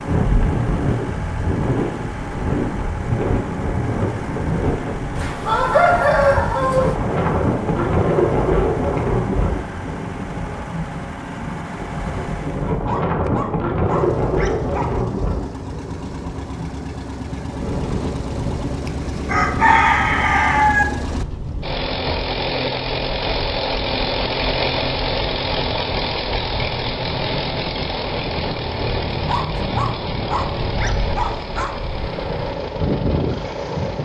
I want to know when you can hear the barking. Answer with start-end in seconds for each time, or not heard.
12.7-14.9, 29.1-31.8.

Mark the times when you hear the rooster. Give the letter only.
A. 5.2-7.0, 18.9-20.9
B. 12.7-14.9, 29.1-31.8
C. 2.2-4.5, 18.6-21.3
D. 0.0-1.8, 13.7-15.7
A.